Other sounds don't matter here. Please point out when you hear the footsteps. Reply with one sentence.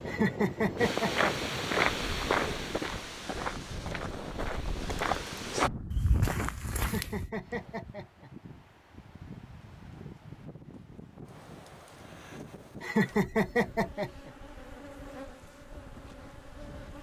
You can hear the footsteps from 0.8 to 7.3 s.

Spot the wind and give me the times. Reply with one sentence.
You can hear the wind from 0.0 to 16.9 s.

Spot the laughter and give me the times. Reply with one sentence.
The laughter can be heard from 0.1 to 1.6 s, from 6.8 to 8.3 s and from 12.8 to 14.3 s.